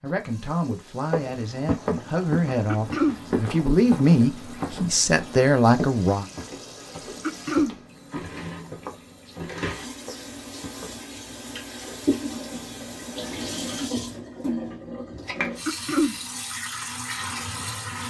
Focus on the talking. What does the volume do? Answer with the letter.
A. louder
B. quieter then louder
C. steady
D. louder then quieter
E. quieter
A.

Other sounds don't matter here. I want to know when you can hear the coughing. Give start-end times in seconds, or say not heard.
2.6-3.2, 7.2-7.8, 15.7-16.1.